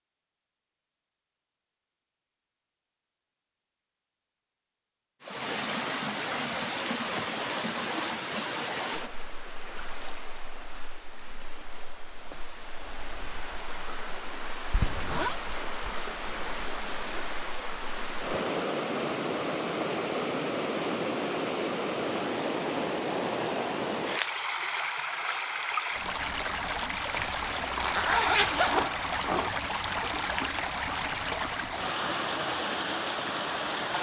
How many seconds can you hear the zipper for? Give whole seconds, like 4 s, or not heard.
3 s.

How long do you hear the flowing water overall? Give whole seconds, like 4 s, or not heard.
29 s.